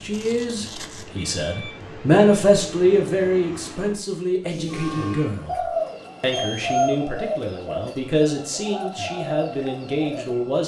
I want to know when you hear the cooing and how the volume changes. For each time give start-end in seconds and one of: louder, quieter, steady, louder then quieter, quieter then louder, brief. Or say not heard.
4.5-10.3 quieter.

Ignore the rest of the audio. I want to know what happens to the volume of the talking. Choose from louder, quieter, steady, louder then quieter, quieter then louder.
quieter.